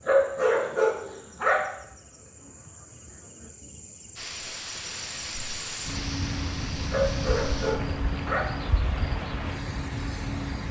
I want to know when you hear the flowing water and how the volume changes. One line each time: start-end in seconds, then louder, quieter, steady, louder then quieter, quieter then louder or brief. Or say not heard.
4.2-10.6 steady.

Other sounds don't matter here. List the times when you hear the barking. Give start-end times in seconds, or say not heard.
0.1-1.6, 6.9-8.5.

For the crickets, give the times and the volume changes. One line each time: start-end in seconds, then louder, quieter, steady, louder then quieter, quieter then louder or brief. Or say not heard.
0.0-10.6 louder.